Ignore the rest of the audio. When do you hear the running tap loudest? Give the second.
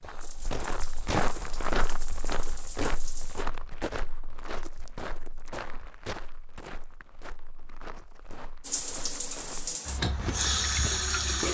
11 s.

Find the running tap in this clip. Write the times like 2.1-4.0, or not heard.
0.0-3.5, 8.6-11.4.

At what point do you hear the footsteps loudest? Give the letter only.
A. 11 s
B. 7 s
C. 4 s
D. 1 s
D.